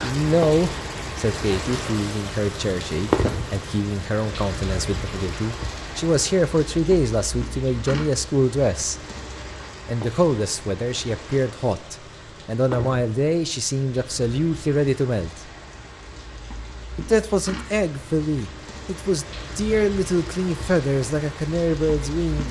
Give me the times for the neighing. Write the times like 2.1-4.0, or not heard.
not heard.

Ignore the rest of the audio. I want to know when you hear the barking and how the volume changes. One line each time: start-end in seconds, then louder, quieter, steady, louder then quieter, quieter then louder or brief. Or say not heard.
not heard.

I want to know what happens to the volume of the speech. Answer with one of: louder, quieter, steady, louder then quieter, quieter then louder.
steady.